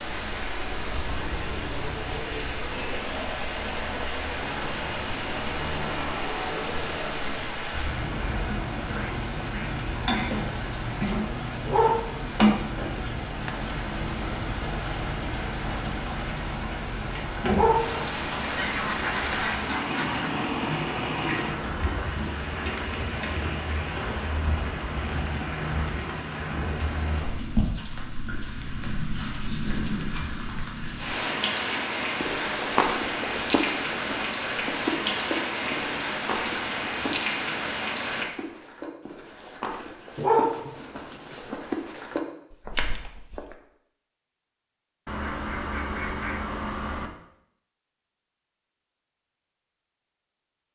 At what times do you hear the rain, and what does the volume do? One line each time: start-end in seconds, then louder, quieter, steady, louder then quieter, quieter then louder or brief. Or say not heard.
0.0-38.2 steady.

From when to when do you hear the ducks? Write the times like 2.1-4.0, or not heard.
8.9-10.3, 18.4-20.3, 45.0-47.1.